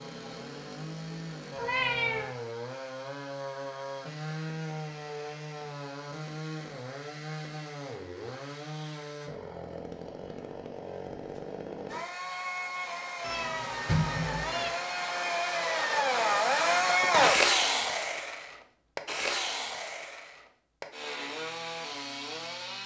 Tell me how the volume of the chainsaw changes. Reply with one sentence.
The volume of the chainsaw goes up, then down.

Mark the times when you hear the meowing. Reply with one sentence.
You can hear the meowing from 1.6 to 2.3 s and from 13.2 to 14.7 s.